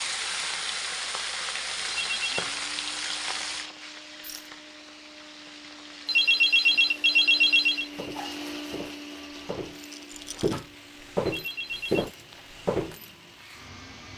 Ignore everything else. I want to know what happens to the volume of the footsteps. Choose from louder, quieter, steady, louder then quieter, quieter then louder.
louder.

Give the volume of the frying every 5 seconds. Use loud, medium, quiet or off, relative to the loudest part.
loud, quiet, quiet.